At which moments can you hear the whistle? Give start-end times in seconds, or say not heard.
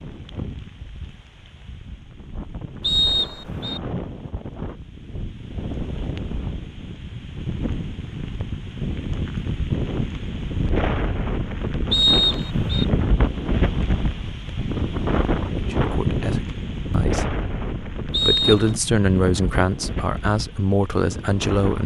2.8-3.8, 11.9-12.8, 18.1-18.8.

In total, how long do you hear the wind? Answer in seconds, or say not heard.
22 s.